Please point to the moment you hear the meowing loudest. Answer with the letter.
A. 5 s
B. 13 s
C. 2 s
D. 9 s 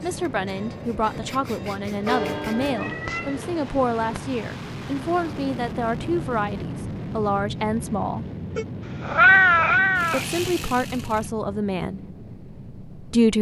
D.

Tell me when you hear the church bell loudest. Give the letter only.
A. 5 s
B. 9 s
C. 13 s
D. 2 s
D.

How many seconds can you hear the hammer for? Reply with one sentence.
You can't hear the hammer here.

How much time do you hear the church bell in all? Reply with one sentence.
The church bell can be heard for 3 seconds in total.